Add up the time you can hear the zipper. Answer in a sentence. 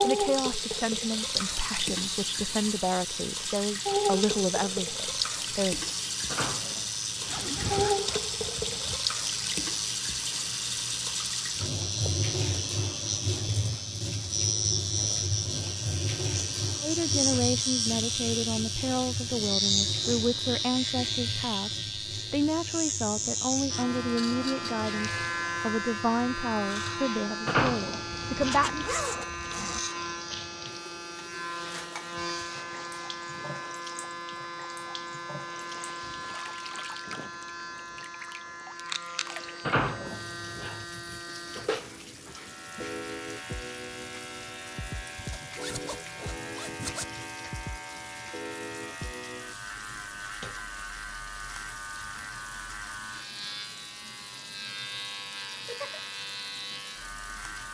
The zipper can be heard for 5 seconds in total.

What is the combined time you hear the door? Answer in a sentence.
You can hear the door for 4 seconds altogether.